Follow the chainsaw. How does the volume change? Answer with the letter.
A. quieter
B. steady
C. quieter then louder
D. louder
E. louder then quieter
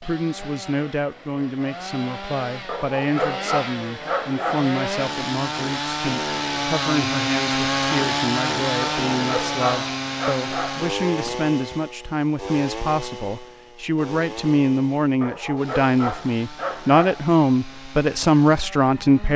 E.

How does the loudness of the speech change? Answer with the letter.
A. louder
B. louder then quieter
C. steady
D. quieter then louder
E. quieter
A.